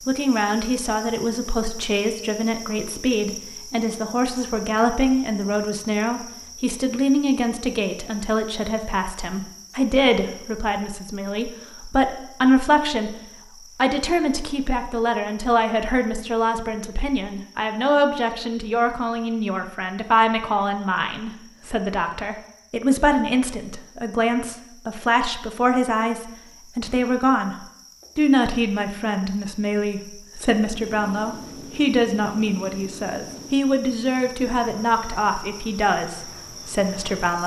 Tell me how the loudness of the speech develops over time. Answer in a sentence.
The loudness of the speech stays about the same.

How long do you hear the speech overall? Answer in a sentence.
You can hear the speech for 37 seconds altogether.